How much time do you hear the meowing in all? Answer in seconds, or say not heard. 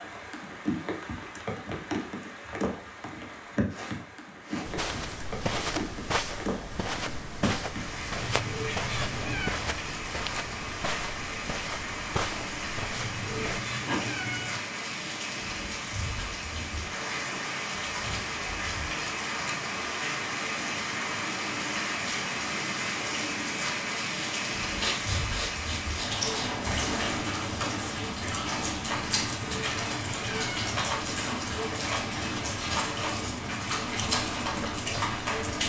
5 s.